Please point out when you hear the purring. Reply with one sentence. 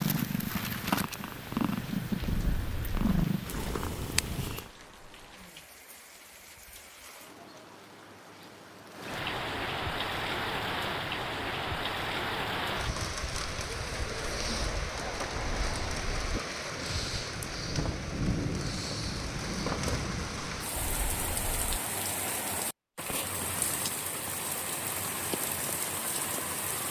You can hear the purring from 0.0 to 4.7 s.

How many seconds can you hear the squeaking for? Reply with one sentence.
The squeaking can be heard for 3 seconds in total.